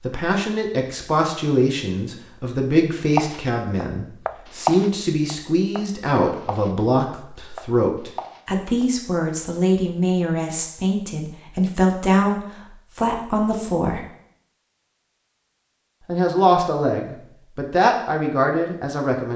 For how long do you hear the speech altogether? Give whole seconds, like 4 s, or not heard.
17 s.